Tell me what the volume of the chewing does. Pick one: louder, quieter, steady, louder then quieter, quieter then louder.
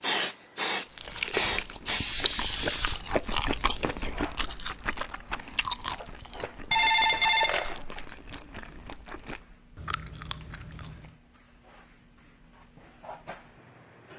quieter.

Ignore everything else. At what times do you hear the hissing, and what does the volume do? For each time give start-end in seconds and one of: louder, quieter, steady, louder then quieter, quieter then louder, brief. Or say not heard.
0.0-14.1 quieter then louder.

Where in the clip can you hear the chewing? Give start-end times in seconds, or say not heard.
0.9-11.2.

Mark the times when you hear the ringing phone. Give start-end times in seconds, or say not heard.
6.7-7.8.